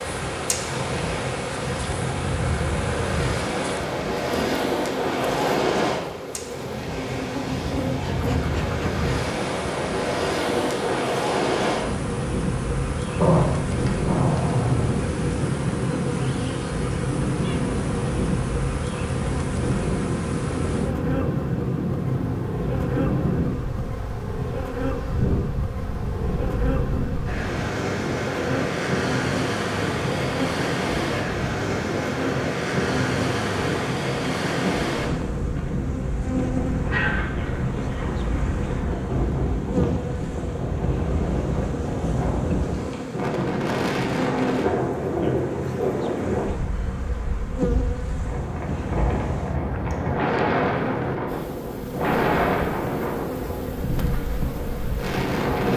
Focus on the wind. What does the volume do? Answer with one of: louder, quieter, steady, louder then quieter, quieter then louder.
steady.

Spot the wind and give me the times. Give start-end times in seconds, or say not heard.
0.0-55.7.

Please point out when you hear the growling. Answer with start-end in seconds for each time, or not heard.
13.2-14.9, 36.8-38.2.